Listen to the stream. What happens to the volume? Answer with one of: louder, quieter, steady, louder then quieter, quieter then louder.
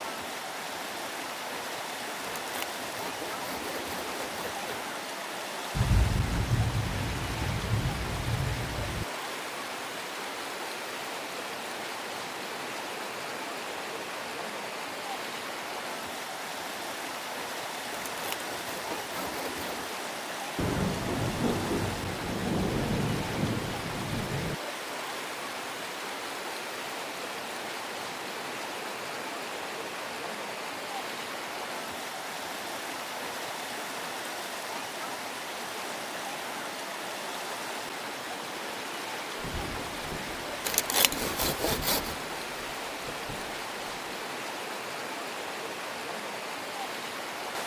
steady.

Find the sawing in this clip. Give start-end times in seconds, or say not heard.
2.4-4.8, 17.9-19.9, 40.6-42.1.